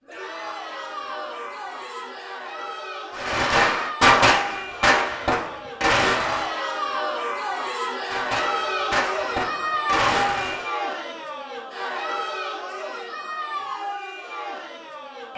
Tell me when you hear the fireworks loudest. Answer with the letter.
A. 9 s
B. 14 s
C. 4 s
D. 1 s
C.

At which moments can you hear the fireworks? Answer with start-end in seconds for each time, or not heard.
3.1-6.5, 8.1-10.7.